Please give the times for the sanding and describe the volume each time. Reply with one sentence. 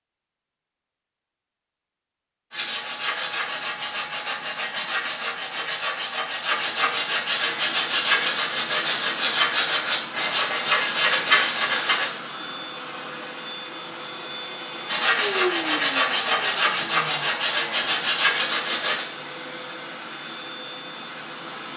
You can hear the sanding from 2.5 to 12.1 s, getting louder; and from 14.8 to 19.1 s, at a steady volume.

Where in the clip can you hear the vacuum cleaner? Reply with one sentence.
The vacuum cleaner can be heard from 7.5 to 21.7 s.